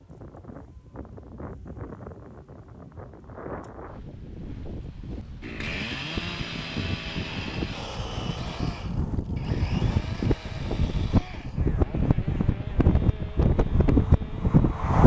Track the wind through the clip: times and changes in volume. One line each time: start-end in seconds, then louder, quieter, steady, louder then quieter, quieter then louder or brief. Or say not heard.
0.0-15.0 louder.